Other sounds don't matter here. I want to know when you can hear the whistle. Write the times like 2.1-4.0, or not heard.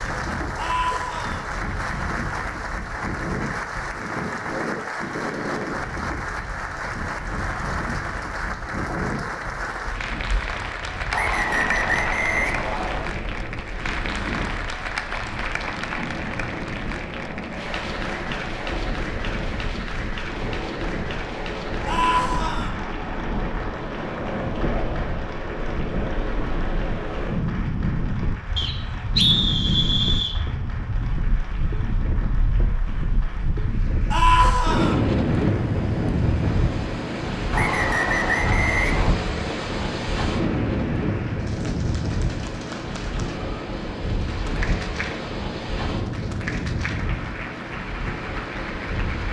11.1-13.1, 28.6-30.4, 37.5-39.1.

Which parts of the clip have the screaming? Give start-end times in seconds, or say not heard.
0.6-1.4, 21.9-22.7, 34.1-35.0.